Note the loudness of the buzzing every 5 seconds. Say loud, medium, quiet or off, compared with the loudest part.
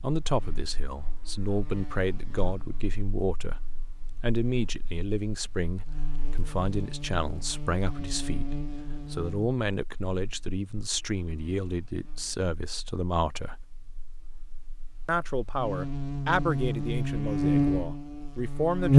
quiet, quiet, quiet, loud.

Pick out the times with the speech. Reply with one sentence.
The speech can be heard from 0.0 to 3.6 s, from 4.2 to 13.7 s and from 15.1 to 18.9 s.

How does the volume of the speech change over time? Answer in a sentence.
The volume of the speech stays about the same.